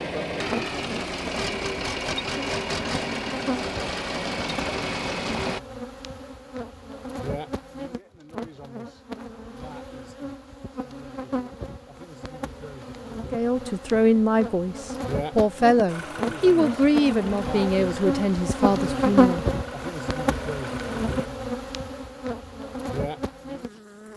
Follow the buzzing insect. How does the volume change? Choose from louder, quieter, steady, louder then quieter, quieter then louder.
louder.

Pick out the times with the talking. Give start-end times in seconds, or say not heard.
13.3-19.4.